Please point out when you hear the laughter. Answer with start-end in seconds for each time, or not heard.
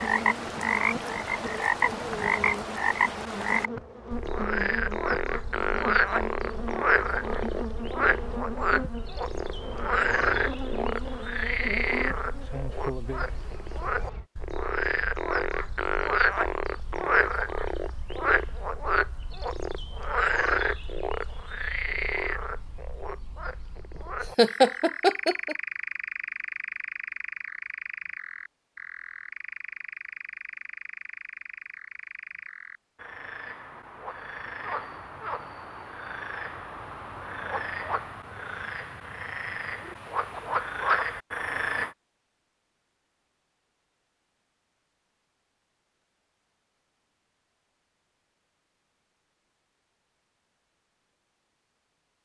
24.4-25.6.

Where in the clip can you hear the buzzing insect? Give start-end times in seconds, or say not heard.
0.0-14.2.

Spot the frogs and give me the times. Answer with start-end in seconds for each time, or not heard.
0.0-42.0.